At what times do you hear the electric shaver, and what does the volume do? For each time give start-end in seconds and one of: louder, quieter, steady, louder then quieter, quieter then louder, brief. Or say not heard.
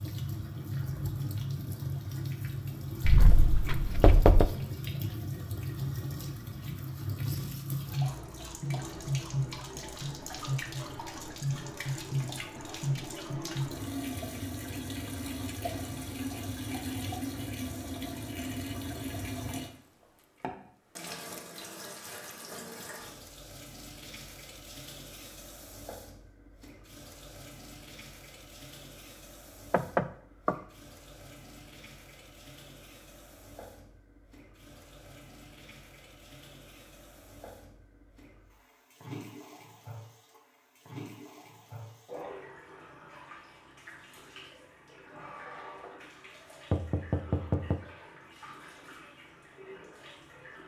not heard.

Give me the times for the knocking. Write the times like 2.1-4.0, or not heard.
3.0-4.5, 29.7-30.6, 46.7-47.8.